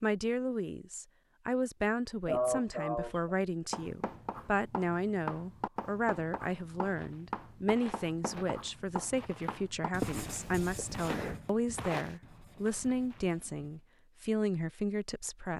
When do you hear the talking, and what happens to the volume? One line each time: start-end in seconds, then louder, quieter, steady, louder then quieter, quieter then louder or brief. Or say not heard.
0.0-15.5 steady.